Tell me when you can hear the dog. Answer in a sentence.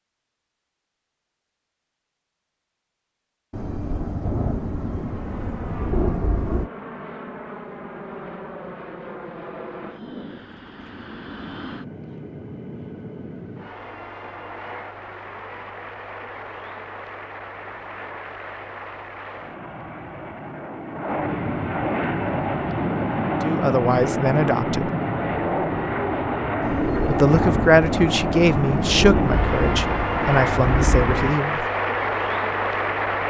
The dog can't be heard in this clip.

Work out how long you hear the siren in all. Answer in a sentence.
You can't hear the siren here.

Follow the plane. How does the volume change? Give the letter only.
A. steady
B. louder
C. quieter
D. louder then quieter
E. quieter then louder
B.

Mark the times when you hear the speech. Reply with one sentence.
You can hear the speech from 23.4 to 24.9 s and from 27.1 to 31.6 s.